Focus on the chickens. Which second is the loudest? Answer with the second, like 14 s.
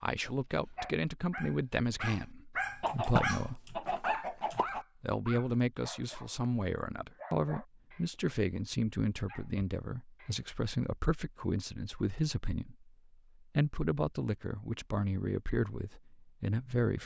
3 s.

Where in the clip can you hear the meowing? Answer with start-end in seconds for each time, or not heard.
not heard.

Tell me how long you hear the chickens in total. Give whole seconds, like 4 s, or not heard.
2 s.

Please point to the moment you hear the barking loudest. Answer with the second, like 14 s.
3 s.